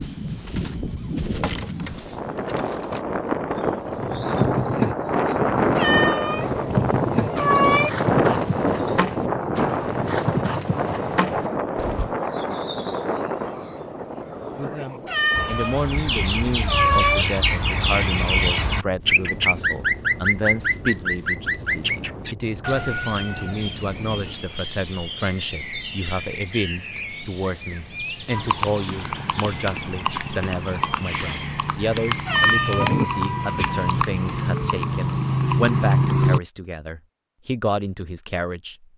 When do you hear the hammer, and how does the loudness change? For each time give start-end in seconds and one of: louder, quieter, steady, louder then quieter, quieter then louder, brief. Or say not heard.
not heard.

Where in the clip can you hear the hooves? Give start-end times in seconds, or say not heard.
3.9-12.1, 28.3-36.4.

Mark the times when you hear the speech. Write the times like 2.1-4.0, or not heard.
14.6-38.9.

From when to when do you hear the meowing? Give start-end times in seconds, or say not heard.
5.8-7.9, 15.1-17.2, 32.2-33.0.